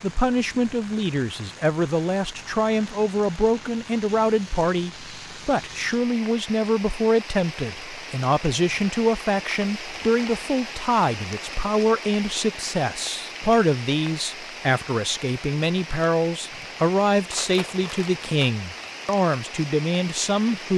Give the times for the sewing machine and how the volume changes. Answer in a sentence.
The sewing machine can't be heard in this clip.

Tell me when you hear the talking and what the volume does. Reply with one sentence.
You can hear the talking from 0.0 to 20.7 s, at a steady volume.